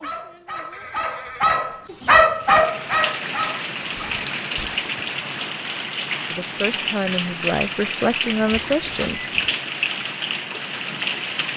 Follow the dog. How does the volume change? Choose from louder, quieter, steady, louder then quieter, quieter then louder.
louder then quieter.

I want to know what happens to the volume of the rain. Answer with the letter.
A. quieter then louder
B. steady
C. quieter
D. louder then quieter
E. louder
B.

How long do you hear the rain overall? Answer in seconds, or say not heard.
9 s.